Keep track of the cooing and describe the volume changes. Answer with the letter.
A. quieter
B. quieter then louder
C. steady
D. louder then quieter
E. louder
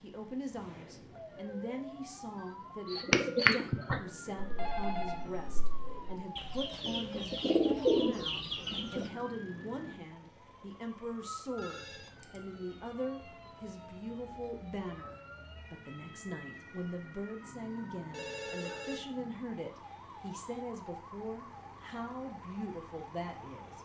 B.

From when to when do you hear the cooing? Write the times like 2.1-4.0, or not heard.
2.9-9.1.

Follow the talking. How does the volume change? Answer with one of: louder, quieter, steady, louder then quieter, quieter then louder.
steady.